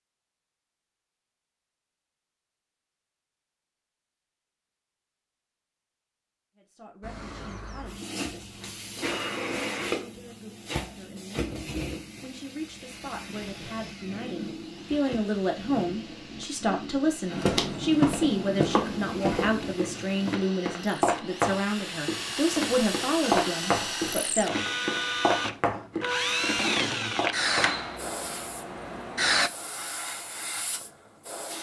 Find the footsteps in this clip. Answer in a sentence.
You can hear the footsteps from 17.3 to 27.8 s.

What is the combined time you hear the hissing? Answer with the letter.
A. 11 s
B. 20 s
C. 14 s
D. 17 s
D.